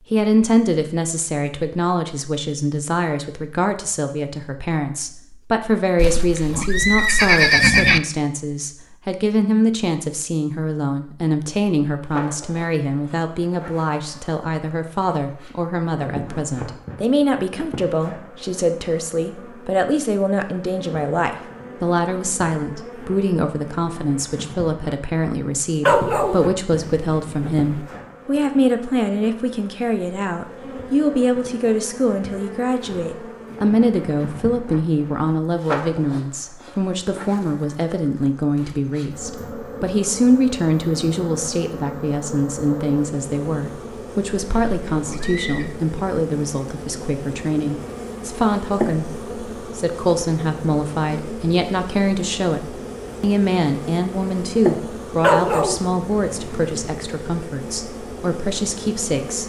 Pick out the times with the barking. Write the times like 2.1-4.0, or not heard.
25.9-27.8, 55.2-56.7.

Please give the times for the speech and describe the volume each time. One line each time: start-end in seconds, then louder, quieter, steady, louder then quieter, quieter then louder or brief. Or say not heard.
0.1-59.4 steady.